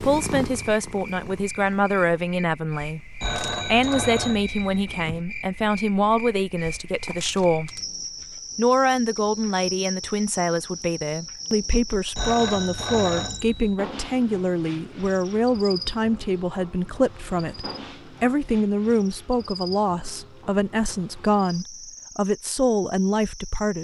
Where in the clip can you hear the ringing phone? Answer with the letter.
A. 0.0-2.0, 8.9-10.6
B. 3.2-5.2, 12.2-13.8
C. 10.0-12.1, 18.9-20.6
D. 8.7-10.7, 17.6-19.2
B.